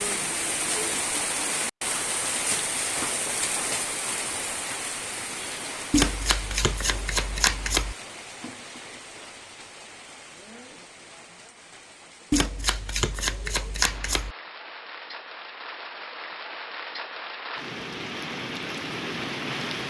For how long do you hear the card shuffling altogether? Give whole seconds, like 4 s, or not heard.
4 s.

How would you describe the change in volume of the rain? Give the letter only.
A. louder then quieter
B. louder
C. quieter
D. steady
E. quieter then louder
E.